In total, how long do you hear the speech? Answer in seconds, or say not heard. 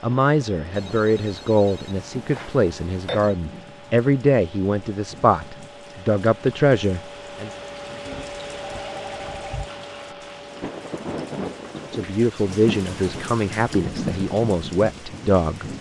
11 s.